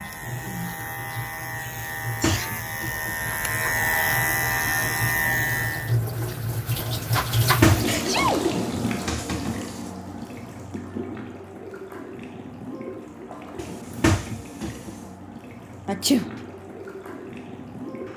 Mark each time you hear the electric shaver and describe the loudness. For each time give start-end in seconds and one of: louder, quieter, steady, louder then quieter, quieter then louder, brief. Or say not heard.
0.0-6.0 louder.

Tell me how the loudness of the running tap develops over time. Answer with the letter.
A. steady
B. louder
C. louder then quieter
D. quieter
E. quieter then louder
C.